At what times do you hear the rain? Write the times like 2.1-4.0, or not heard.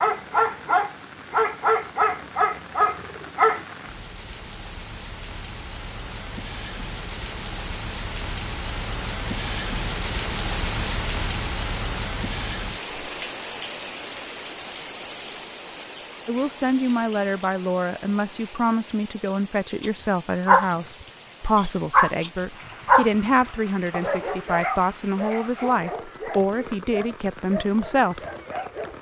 0.0-28.9.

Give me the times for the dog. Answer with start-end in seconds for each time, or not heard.
0.0-3.6, 19.8-28.9.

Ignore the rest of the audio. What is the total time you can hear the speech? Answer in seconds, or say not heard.
12 s.